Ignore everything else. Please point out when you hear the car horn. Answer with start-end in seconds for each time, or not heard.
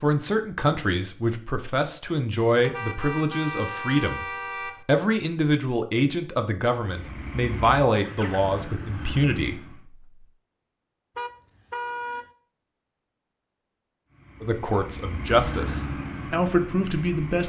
2.6-4.8, 11.2-12.2.